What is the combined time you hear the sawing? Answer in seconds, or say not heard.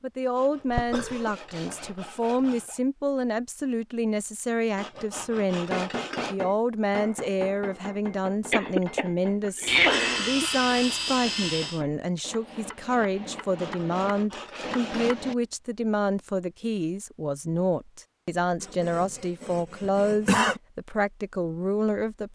10 s.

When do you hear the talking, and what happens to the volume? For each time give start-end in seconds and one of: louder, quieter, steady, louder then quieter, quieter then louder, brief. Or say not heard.
0.0-22.3 steady.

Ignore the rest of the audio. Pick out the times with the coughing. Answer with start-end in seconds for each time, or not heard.
0.7-1.9, 8.5-10.5, 19.8-20.6.